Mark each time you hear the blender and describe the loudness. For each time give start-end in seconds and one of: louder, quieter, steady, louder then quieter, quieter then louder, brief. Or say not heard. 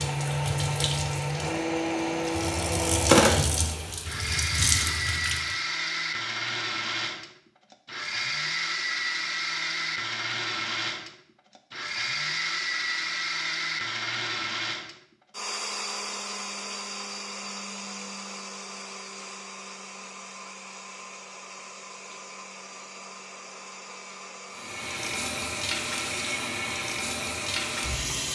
0.0-28.2 quieter.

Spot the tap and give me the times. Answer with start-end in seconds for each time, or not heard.
0.0-5.6, 24.5-28.2.